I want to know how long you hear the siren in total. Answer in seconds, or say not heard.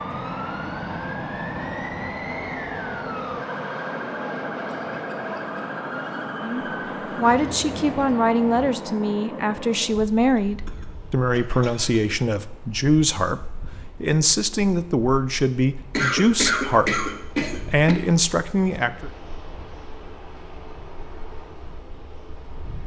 9 s.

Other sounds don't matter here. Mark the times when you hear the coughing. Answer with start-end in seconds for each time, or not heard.
4.7-5.6, 10.2-12.1, 15.9-17.9.